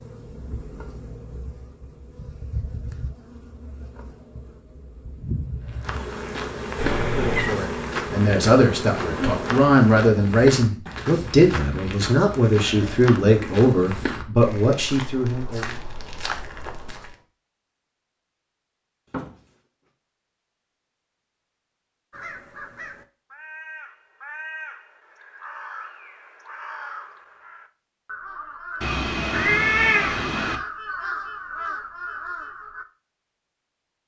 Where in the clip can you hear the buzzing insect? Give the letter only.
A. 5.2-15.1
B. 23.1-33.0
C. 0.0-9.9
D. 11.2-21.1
C.